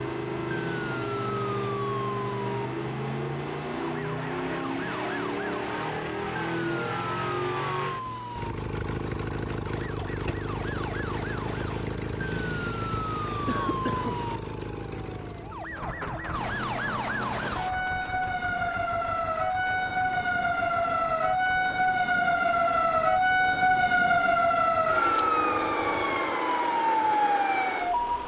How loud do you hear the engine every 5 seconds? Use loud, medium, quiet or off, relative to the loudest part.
loud, loud, loud, medium, quiet, quiet.